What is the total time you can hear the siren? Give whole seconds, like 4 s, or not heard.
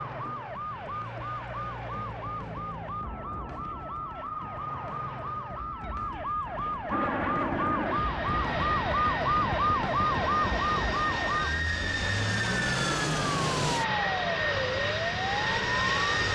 16 s.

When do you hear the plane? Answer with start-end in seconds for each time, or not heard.
6.9-16.3.